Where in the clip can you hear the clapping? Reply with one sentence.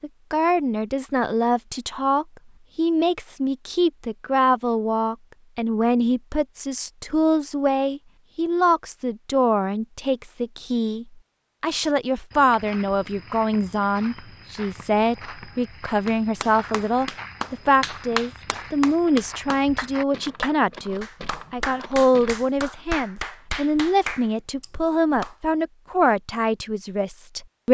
The clapping can be heard from 16.1 to 25.4 s.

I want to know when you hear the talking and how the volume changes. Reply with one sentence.
You can hear the talking from 0.0 to 27.7 s, at a steady volume.